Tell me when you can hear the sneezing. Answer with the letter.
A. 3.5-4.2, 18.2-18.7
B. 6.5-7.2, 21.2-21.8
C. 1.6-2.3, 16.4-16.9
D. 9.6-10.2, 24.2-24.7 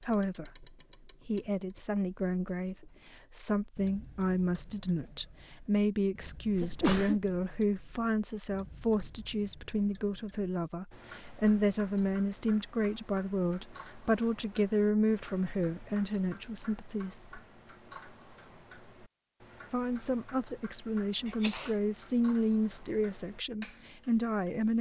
B.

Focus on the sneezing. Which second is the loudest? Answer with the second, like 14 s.
7 s.